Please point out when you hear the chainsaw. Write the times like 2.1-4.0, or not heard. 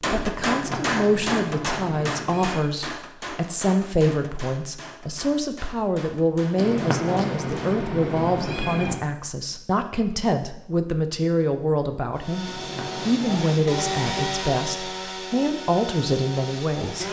12.2-17.0.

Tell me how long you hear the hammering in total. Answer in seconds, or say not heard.
8 s.